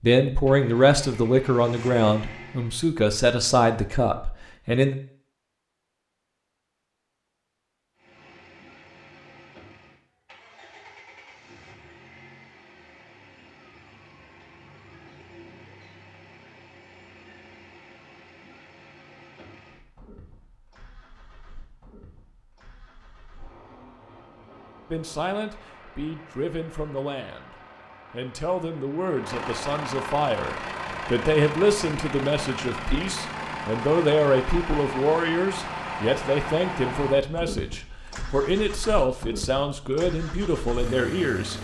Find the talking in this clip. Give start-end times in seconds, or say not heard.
0.0-5.0, 24.9-41.5.